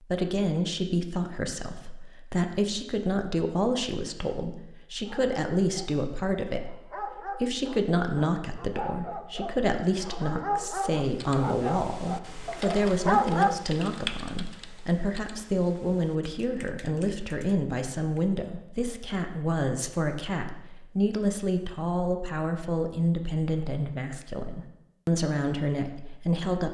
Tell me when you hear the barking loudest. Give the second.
13 s.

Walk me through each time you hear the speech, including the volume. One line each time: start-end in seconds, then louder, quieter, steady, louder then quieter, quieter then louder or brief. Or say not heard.
0.0-26.6 steady.